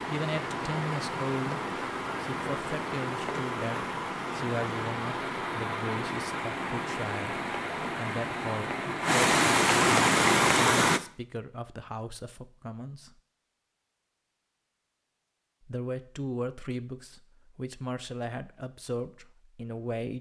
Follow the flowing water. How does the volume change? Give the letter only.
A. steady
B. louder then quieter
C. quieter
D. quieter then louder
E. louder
E.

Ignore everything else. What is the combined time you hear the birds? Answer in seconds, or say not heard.
not heard.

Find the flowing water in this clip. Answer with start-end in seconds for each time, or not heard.
0.0-11.0.